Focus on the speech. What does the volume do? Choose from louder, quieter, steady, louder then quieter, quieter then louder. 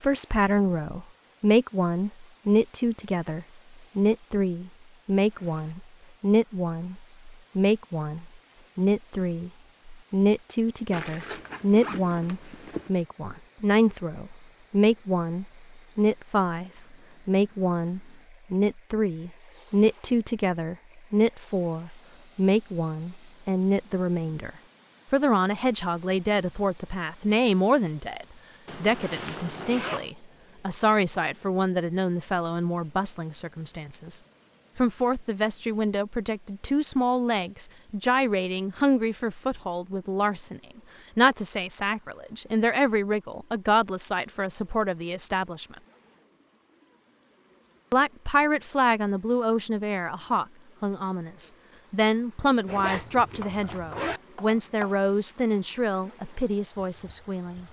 steady.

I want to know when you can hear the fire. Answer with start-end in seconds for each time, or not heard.
not heard.